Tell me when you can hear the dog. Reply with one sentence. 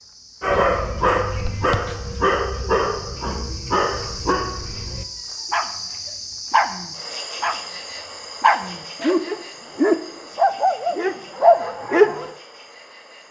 The dog can be heard from 0.4 to 12.3 s.